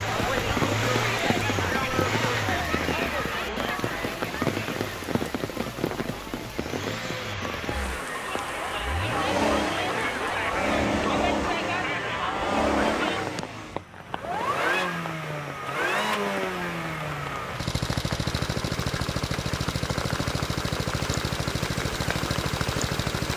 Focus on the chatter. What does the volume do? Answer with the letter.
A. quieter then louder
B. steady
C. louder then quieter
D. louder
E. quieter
A.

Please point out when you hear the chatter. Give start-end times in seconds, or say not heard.
0.0-13.2.